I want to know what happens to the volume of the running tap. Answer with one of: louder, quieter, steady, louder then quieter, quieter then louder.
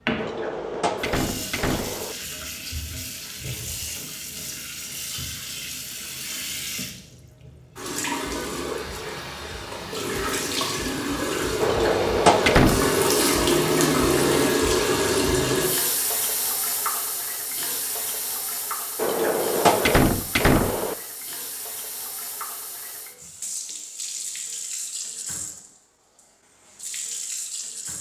louder then quieter.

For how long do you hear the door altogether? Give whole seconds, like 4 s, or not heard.
5 s.